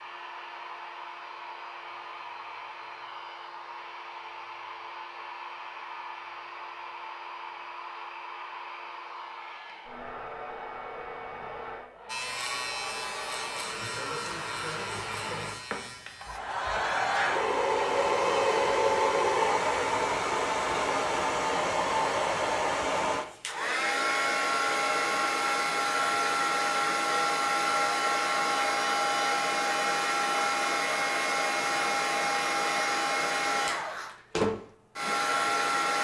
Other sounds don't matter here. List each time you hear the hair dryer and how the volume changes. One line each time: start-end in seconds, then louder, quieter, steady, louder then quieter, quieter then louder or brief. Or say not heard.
0.0-35.9 louder.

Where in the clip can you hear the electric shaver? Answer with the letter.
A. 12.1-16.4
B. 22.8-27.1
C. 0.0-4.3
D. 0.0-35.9
A.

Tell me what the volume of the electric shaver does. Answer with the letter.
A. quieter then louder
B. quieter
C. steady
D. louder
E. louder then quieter
B.